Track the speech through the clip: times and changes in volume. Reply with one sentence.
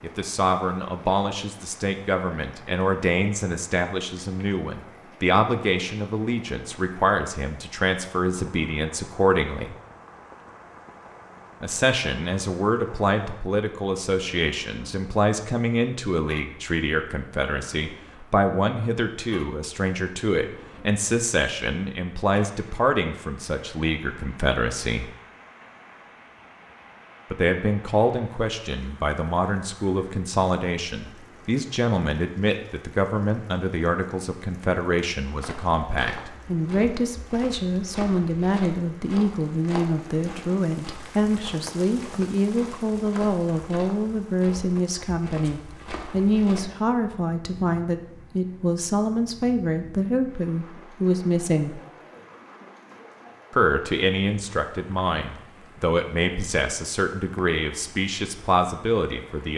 The speech can be heard from 0.0 to 9.8 s, at a steady volume; from 11.6 to 25.1 s, at a steady volume; from 27.3 to 51.8 s, at a steady volume; and from 53.5 to 59.5 s, at a steady volume.